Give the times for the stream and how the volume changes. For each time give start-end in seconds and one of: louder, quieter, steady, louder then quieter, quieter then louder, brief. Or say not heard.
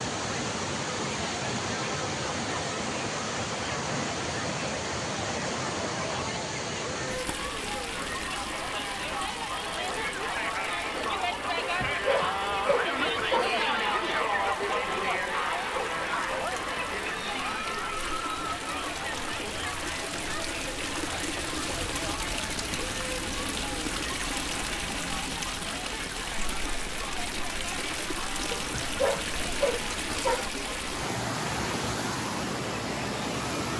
0.0-33.7 quieter then louder.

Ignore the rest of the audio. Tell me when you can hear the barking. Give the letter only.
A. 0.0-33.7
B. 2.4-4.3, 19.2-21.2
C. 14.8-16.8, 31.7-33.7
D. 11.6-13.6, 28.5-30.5
D.